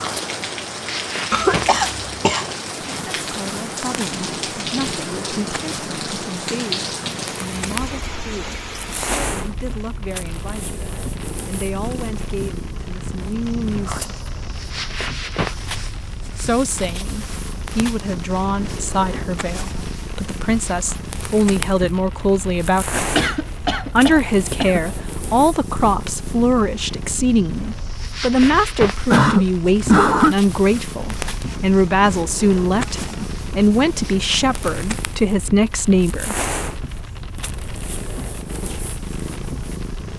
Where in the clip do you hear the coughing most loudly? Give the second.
30 s.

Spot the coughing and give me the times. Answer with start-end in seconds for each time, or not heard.
1.3-2.5, 23.1-25.0, 29.1-30.4.